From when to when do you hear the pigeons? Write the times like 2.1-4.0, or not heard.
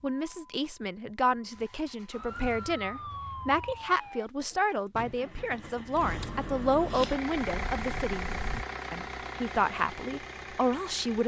not heard.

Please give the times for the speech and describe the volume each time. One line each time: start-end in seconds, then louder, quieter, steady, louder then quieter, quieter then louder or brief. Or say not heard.
0.0-11.2 steady.